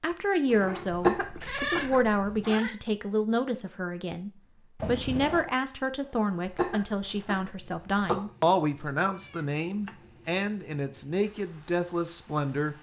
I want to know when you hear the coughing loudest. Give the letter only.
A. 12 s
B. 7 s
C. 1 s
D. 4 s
C.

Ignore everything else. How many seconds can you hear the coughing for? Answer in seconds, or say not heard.
3 s.